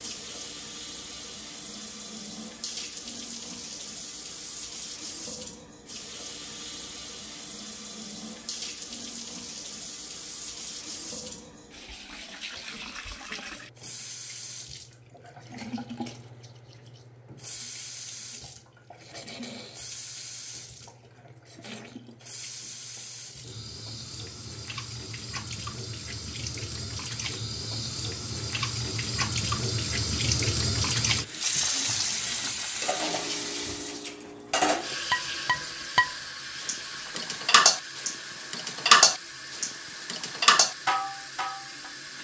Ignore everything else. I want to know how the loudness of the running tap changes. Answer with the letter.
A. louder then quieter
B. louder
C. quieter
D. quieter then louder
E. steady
A.